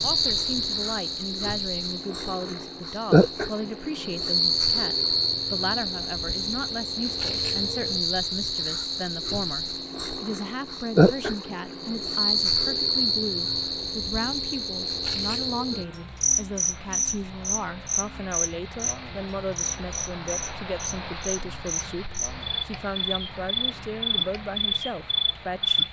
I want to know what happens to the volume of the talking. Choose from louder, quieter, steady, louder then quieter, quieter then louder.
steady.